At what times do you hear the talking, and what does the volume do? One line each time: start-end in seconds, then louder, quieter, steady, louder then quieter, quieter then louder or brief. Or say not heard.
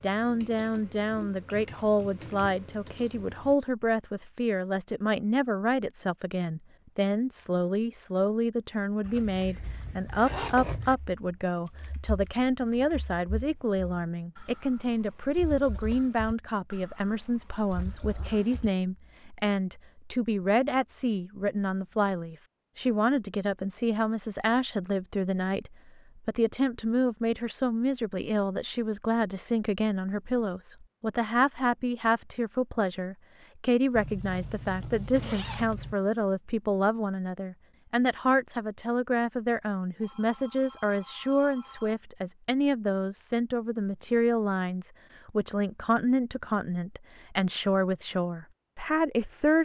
0.0-49.6 steady.